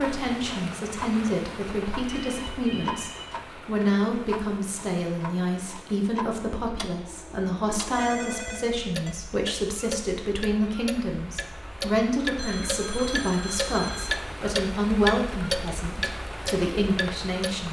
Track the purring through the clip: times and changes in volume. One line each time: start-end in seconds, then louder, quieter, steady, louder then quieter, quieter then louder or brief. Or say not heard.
not heard.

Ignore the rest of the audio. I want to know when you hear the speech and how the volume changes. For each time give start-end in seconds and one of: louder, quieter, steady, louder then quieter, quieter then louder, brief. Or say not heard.
0.0-17.6 steady.